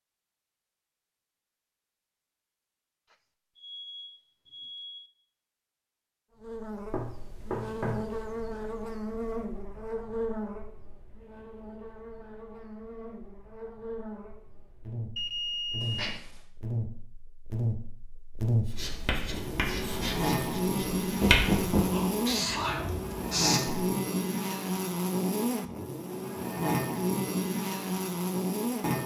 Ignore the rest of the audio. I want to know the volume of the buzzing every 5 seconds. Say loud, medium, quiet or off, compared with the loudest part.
off, medium, medium, medium, loud, loud.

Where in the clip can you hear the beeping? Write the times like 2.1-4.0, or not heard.
3.1-5.1, 15.2-16.0.